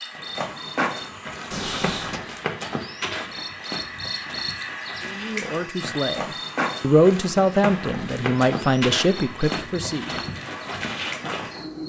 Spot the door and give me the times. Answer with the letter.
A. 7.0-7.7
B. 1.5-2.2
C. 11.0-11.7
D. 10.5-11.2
B.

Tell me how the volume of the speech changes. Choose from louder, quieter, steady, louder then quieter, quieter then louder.
louder then quieter.